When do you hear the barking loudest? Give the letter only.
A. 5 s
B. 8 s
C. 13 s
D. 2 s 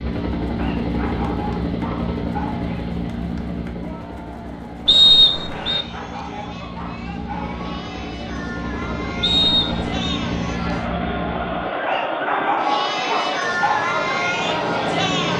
C.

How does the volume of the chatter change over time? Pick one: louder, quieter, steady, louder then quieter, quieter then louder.
louder.